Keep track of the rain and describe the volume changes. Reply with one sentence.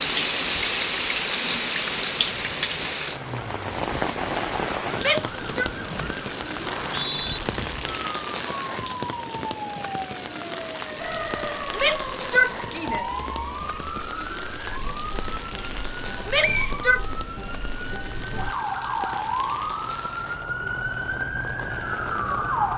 The loudness of the rain goes down.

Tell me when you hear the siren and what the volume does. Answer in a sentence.
You can hear the siren from 0.0 to 22.7 s, getting louder.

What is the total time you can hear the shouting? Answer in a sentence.
The shouting can be heard for 3 seconds in total.